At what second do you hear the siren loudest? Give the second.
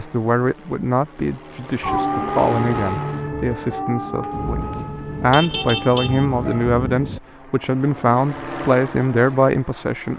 2 s.